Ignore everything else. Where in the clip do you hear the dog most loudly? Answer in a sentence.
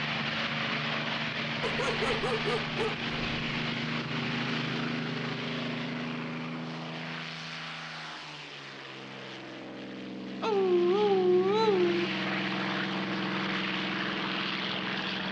The loudest moment of the dog is at 11 seconds.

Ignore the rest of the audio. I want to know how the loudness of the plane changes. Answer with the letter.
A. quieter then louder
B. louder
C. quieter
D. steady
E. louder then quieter
A.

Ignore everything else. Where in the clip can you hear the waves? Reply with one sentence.
You can't hear the waves here.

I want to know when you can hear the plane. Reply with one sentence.
You can hear the plane from 0.0 to 15.2 s.